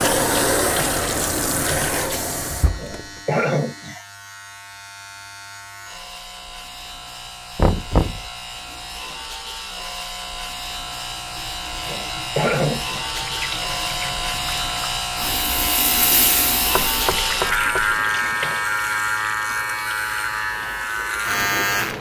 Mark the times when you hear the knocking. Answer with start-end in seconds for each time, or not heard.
7.5-8.2, 16.8-17.9.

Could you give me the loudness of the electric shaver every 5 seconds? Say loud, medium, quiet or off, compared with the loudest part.
quiet, quiet, medium, loud, loud.